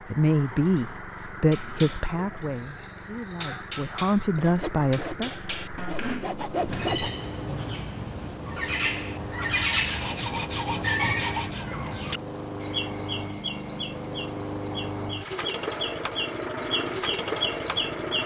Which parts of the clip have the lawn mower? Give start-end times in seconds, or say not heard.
0.0-18.2.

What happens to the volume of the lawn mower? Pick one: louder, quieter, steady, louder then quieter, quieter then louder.
louder.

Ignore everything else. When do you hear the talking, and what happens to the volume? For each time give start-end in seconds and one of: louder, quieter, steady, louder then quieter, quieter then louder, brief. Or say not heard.
0.1-5.3 quieter then louder.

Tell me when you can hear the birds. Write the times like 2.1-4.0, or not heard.
6.5-18.2.